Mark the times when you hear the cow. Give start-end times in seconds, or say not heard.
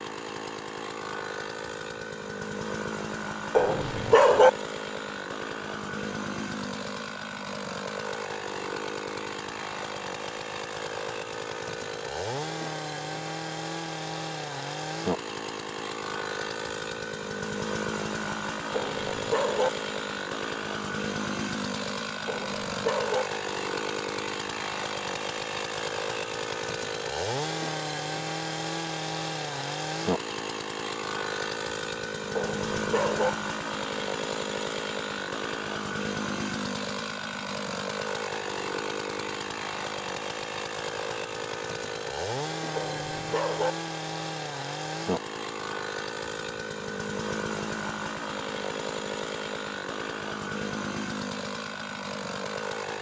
not heard.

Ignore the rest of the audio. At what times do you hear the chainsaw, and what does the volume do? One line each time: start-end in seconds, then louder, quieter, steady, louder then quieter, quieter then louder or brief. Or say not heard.
0.0-52.9 steady.